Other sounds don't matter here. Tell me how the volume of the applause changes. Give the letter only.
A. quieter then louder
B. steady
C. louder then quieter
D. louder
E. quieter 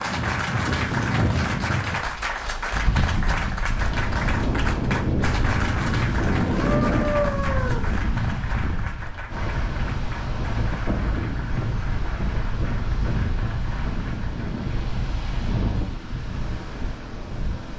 E.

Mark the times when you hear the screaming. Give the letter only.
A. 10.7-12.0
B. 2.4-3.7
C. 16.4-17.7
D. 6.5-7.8
D.